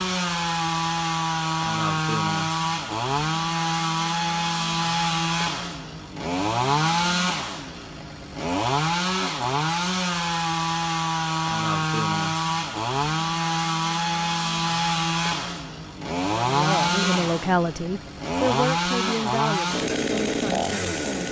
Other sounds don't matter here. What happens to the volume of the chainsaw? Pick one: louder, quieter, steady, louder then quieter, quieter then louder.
steady.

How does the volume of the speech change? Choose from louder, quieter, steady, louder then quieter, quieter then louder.
quieter.